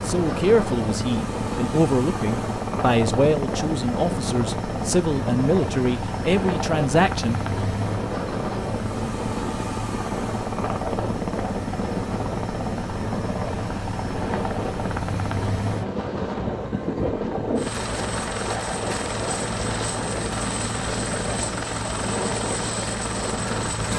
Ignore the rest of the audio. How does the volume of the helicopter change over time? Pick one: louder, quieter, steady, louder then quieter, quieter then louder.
steady.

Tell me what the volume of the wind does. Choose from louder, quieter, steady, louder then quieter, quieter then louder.
steady.